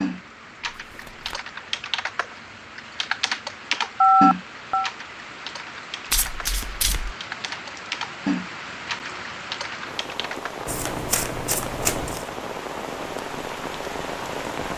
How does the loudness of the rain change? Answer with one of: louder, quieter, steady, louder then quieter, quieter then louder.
louder.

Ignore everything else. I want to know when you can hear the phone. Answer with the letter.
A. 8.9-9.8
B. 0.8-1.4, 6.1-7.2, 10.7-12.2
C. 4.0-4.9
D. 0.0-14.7
C.